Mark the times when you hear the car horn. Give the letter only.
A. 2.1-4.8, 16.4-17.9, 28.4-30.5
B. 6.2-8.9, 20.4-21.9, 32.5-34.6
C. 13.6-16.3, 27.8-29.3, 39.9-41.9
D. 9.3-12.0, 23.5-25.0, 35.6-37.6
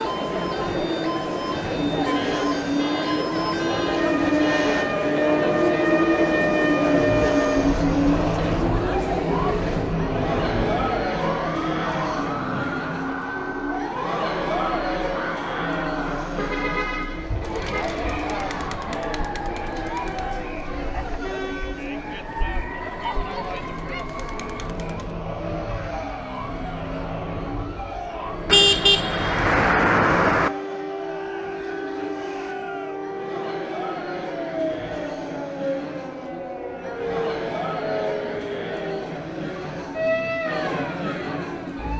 A.